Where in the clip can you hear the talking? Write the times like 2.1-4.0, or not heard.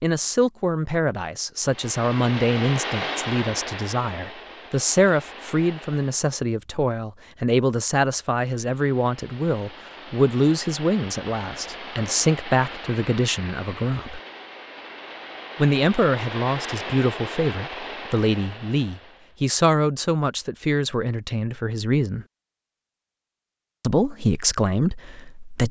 0.0-14.2, 15.6-22.2, 23.8-25.6.